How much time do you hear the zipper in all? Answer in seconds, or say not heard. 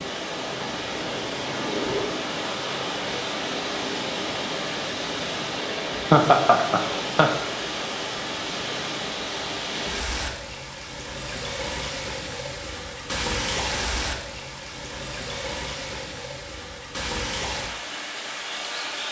2 s.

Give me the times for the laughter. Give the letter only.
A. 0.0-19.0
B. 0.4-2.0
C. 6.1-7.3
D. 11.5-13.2
C.